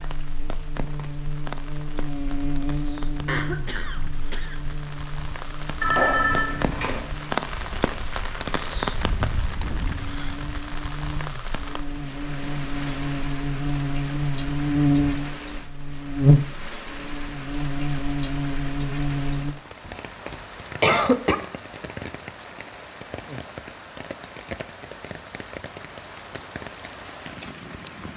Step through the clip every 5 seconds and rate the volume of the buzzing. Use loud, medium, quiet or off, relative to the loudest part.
medium, quiet, loud, loud, off, off.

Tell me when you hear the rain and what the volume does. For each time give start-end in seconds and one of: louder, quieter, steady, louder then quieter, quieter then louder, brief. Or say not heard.
0.0-28.1 louder then quieter.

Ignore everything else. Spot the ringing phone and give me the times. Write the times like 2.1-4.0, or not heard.
5.8-7.0.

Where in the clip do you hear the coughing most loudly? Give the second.
21 s.